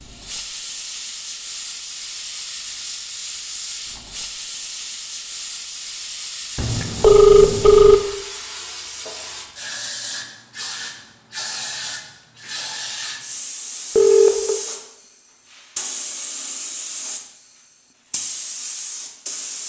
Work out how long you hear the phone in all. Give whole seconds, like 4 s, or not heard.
2 s.